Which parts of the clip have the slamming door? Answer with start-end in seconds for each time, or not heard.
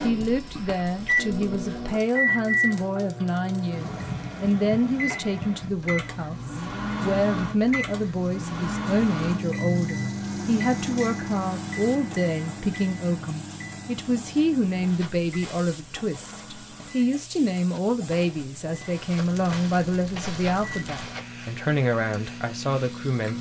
not heard.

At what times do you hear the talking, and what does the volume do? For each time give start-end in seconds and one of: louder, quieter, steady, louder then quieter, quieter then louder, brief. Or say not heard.
0.0-23.3 steady.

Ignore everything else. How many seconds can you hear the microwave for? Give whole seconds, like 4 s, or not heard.
23 s.